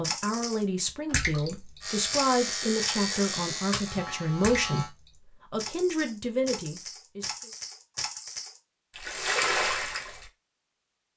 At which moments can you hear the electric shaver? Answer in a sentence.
The electric shaver can be heard from 1.8 to 4.9 s.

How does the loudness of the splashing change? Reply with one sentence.
The volume of the splashing goes down, then up.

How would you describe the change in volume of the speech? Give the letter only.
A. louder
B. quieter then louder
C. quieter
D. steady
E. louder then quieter
D.